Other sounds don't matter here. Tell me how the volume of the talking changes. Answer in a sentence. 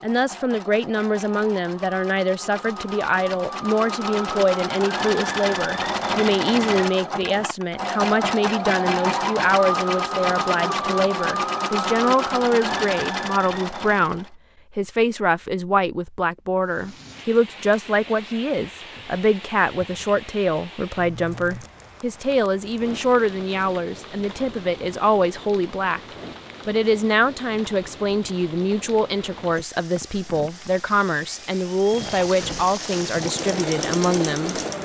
The volume of the talking stays about the same.